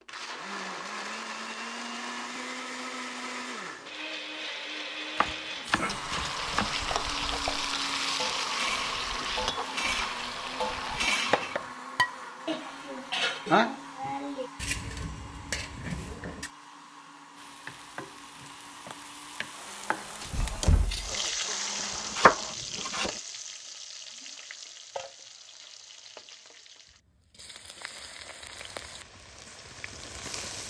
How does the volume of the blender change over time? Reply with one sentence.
The loudness of the blender goes down.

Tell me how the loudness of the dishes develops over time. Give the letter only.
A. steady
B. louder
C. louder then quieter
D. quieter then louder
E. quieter
C.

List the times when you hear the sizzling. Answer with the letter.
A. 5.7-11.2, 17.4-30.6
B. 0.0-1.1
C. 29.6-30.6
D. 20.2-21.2
A.